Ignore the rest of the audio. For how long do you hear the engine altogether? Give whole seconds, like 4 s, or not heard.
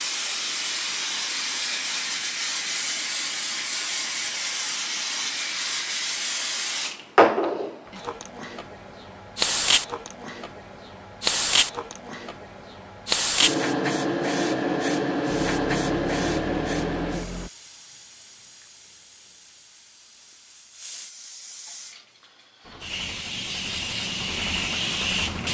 5 s.